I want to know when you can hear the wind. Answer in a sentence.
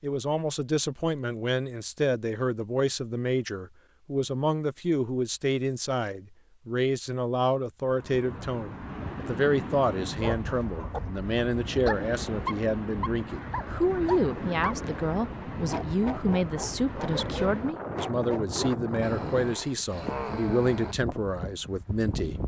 The wind can be heard from 7.8 to 22.4 s.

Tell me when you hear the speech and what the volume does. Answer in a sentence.
You can hear the speech from 0.0 to 22.4 s, at a steady volume.